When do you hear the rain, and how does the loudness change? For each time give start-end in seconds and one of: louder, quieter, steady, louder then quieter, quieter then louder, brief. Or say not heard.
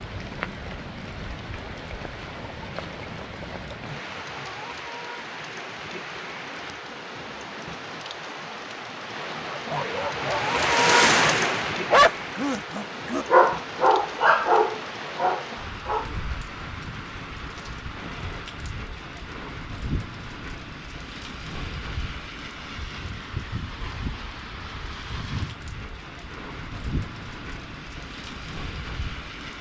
0.0-29.5 louder then quieter.